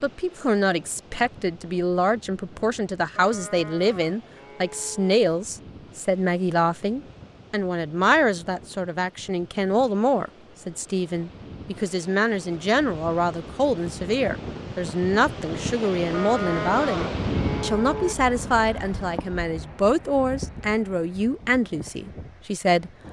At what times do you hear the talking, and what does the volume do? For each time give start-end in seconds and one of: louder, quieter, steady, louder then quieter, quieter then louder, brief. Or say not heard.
0.0-22.9 steady.